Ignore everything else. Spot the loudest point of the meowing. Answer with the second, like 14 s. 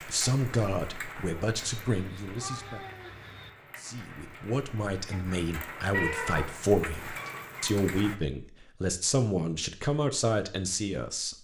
6 s.